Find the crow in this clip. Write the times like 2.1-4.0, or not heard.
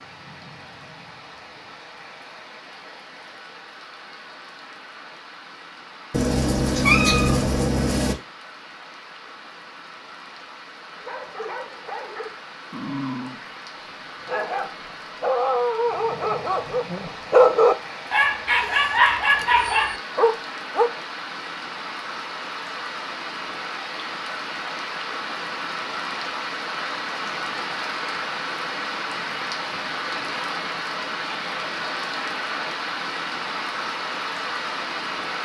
not heard.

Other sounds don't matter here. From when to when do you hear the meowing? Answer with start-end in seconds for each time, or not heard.
6.1-8.2.